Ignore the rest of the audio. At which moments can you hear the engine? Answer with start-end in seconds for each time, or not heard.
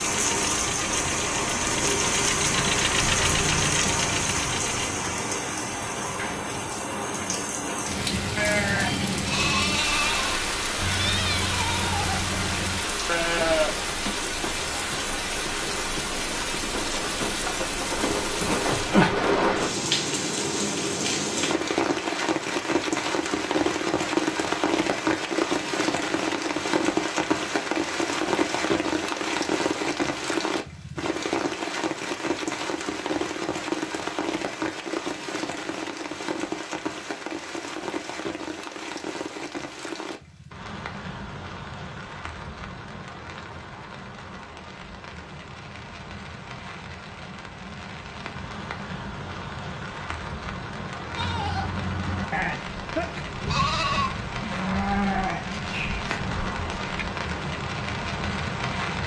0.1-5.0.